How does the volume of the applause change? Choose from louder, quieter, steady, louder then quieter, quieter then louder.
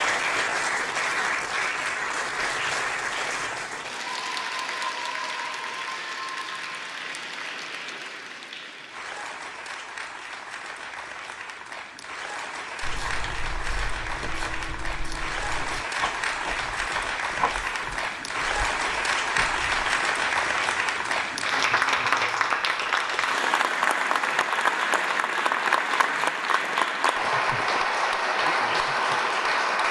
quieter then louder.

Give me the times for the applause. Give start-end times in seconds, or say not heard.
0.0-29.8.